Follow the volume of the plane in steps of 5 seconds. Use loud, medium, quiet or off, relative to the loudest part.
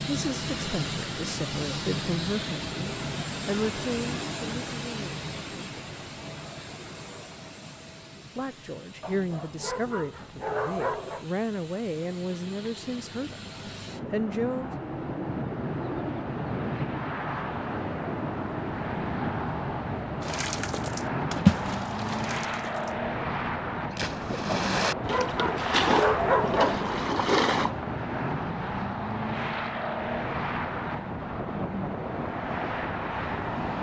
loud, medium, medium, loud, loud, loud, loud.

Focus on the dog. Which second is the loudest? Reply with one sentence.
The volume of the dog peaks at 26 seconds.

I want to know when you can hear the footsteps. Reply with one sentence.
You can't hear the footsteps here.